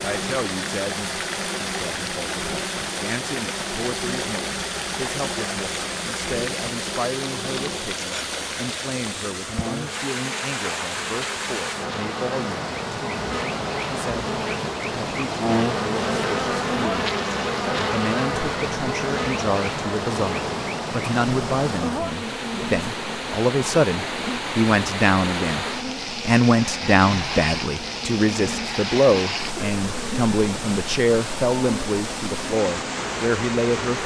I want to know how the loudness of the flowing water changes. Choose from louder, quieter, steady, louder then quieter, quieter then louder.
steady.